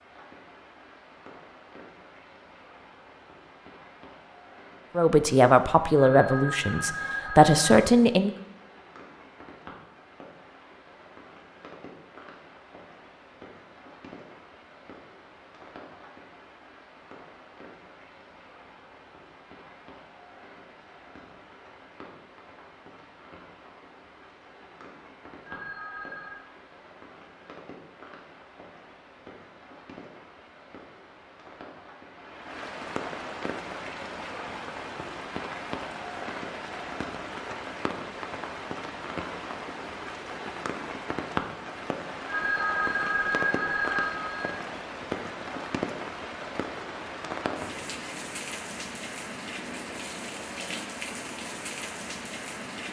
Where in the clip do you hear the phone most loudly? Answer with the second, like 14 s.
43 s.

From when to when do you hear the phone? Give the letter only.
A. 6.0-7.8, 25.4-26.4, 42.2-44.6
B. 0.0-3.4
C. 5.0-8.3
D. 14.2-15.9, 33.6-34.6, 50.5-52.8
A.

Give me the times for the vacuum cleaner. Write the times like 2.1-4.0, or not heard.
not heard.